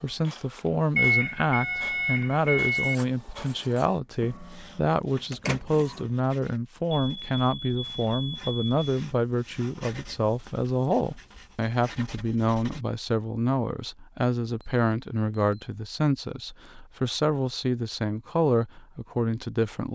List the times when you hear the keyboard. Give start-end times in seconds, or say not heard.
not heard.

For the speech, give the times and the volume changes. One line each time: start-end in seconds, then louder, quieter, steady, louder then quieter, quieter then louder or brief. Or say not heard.
0.0-19.9 steady.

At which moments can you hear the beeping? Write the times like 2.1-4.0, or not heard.
0.9-3.0, 7.0-8.8, 14.6-15.7.